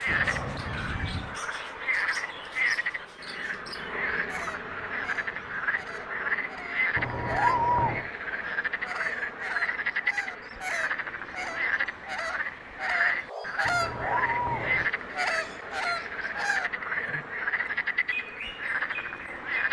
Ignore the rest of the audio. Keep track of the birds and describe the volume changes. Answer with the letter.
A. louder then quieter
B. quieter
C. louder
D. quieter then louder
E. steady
C.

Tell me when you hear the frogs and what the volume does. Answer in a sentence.
The frogs can be heard from 0.0 to 19.6 s, at a steady volume.